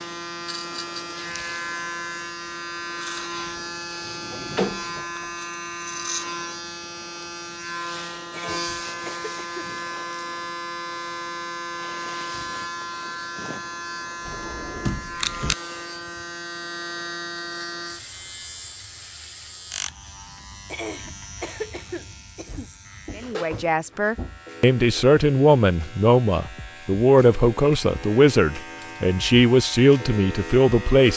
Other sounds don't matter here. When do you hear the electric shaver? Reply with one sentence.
The electric shaver can be heard from 0.0 to 31.1 s.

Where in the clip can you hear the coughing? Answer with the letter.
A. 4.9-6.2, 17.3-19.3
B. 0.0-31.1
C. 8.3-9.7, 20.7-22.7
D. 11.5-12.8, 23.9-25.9
C.